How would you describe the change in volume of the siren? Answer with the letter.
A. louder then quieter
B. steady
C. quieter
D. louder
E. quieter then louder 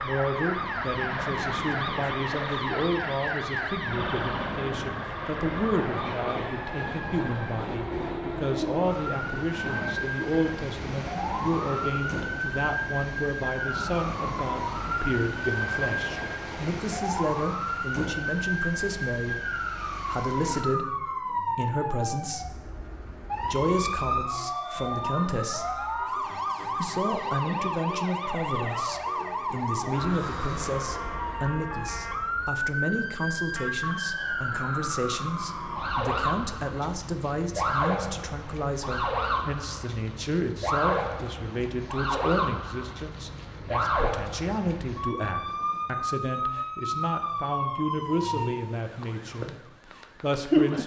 B.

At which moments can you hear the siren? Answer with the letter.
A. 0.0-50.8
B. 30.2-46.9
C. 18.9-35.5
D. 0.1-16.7
A.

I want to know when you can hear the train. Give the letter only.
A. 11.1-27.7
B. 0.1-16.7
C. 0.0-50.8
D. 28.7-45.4
B.